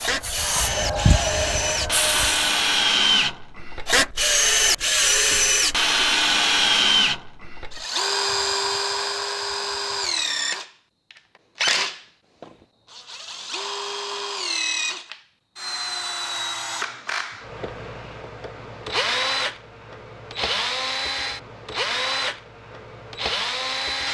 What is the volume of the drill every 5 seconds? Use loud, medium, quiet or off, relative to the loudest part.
loud, loud, medium, medium, medium.